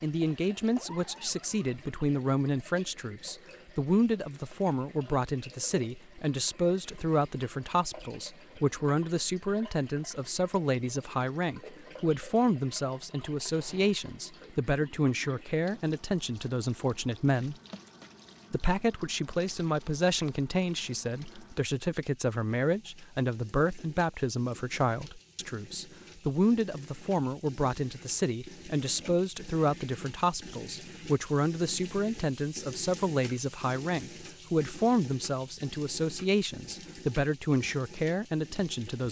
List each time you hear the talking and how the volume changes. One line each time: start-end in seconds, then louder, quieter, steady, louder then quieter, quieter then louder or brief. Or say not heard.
0.0-17.6 steady
18.5-39.0 steady.